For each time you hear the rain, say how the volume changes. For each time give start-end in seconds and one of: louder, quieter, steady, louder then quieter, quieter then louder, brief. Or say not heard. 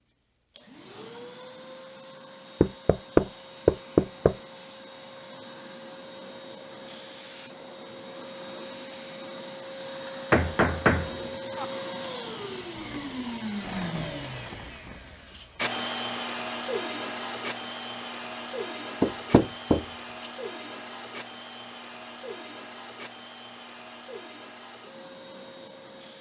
not heard.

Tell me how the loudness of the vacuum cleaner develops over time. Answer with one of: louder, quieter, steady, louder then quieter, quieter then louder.
louder then quieter.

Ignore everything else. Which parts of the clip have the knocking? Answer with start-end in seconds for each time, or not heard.
2.6-4.3, 10.3-11.7, 19.0-19.9.